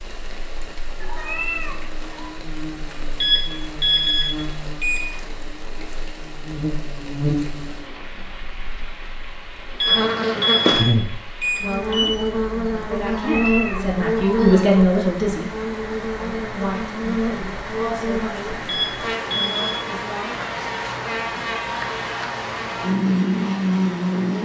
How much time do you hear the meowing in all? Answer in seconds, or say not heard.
3 s.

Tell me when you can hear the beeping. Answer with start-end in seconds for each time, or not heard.
3.2-5.2, 9.8-12.3, 18.6-19.9.